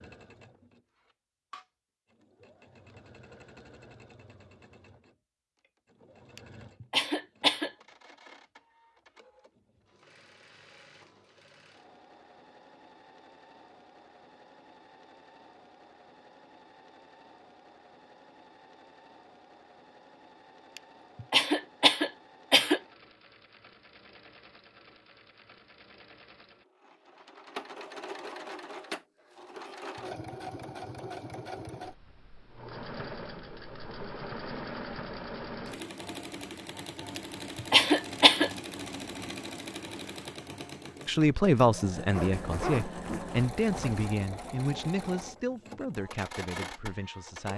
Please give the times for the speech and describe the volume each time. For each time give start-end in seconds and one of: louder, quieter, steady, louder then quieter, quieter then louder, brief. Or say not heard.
41.0-47.5 quieter.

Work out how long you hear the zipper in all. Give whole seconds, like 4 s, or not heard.
2 s.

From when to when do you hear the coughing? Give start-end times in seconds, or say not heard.
6.3-7.7, 20.8-22.8, 37.1-38.5.